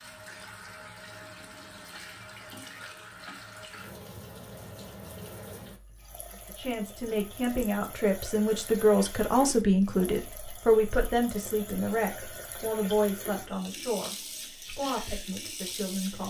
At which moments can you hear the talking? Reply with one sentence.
The talking can be heard from 6.3 to 16.2 s.